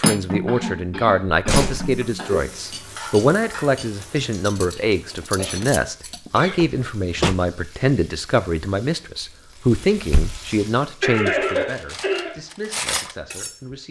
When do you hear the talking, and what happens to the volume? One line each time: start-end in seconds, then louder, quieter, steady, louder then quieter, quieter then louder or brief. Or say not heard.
0.0-13.8 quieter.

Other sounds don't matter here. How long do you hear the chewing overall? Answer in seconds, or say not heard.
not heard.